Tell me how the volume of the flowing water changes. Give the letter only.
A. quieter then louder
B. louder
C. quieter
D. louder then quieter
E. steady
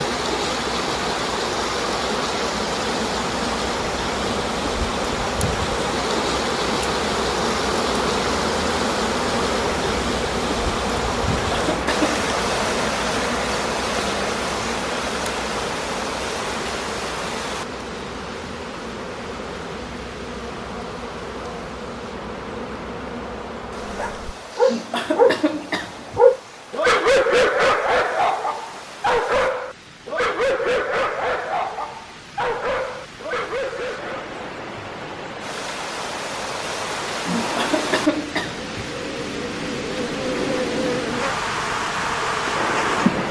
A.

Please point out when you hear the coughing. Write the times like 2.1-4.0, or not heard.
11.5-12.1, 24.6-26.2, 37.3-38.9.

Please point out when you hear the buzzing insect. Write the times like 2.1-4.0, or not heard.
0.0-24.6, 37.1-43.2.